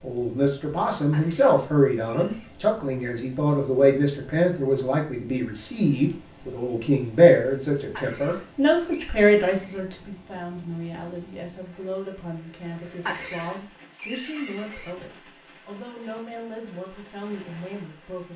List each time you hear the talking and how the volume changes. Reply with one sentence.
The talking can be heard from 0.0 to 18.3 s, getting quieter.